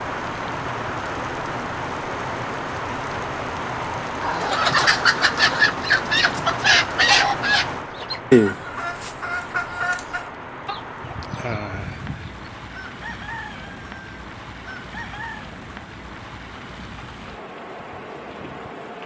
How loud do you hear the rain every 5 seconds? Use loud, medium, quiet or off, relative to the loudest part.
loud, loud, medium, medium.